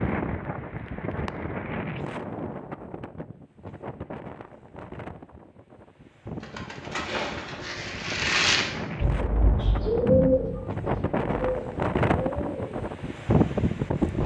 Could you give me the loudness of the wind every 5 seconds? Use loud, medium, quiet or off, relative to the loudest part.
medium, medium, loud.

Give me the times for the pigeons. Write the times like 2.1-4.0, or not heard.
6.4-12.8.